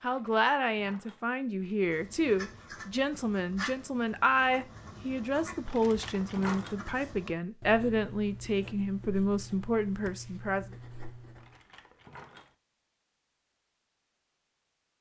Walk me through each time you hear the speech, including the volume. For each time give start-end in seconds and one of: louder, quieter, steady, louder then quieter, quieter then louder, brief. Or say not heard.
0.0-10.7 steady.